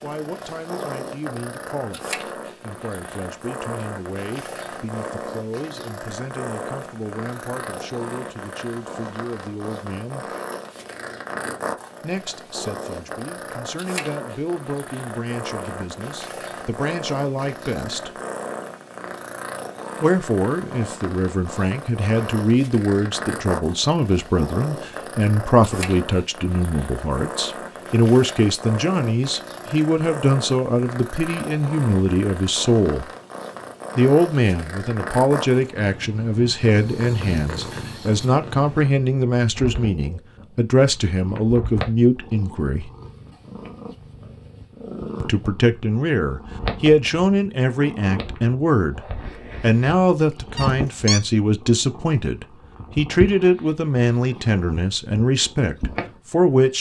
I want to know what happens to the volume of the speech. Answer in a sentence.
The loudness of the speech goes up.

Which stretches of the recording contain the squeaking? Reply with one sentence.
You can hear the squeaking from 50.5 to 51.2 s.